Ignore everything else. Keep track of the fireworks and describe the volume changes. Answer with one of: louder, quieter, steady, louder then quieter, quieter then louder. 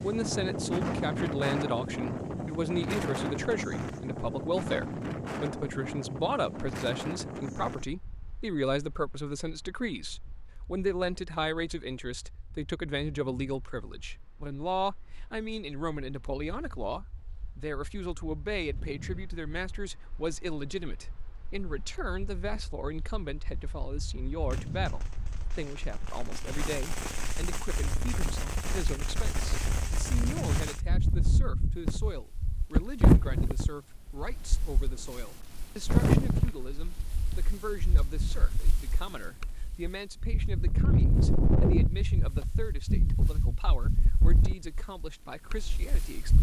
louder.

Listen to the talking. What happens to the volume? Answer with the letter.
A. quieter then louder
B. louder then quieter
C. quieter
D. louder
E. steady
C.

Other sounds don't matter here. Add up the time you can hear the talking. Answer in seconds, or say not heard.
46 s.